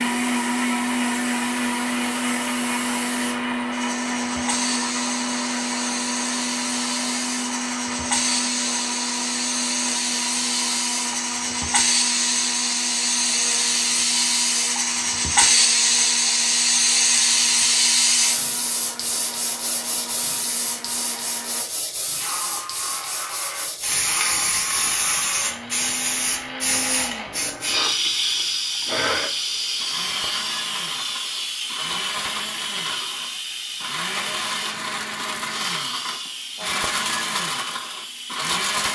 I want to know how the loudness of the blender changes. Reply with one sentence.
The loudness of the blender goes down, then up.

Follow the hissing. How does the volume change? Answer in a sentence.
The volume of the hissing goes up, then down.